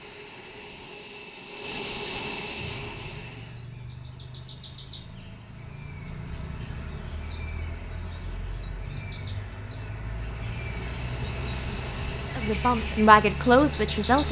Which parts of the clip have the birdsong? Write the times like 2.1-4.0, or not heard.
2.5-14.2.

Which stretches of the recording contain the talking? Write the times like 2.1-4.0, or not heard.
12.3-14.2.